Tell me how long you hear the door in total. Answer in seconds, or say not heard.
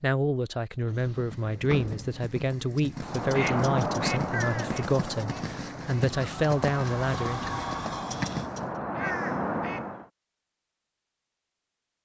4 s.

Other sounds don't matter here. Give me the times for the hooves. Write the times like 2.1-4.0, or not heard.
0.8-8.7.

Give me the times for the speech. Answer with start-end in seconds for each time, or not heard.
0.0-7.5.